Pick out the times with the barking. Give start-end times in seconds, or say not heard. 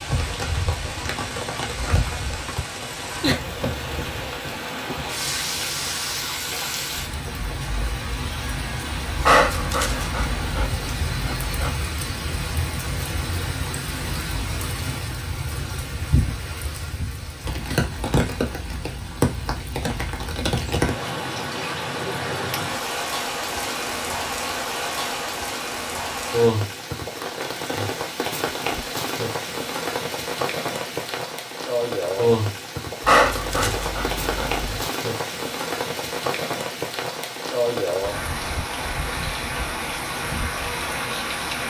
9.2-11.8, 33.0-34.9.